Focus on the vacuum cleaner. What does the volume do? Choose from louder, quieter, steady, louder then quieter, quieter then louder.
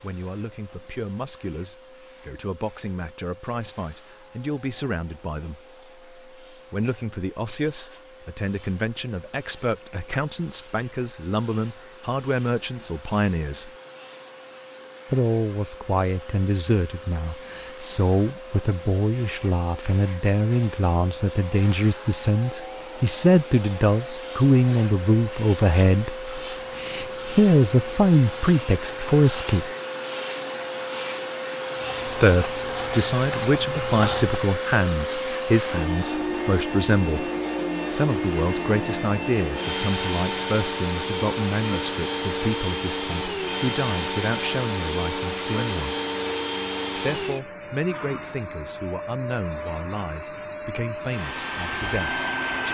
louder.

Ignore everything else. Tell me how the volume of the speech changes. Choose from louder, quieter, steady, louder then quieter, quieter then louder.
louder then quieter.